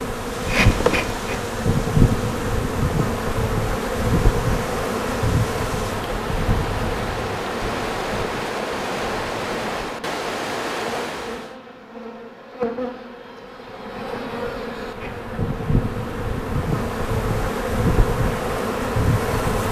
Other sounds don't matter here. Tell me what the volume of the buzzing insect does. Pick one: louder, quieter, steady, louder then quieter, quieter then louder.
quieter then louder.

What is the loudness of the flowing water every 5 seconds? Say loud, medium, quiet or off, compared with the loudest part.
medium, loud, loud, off.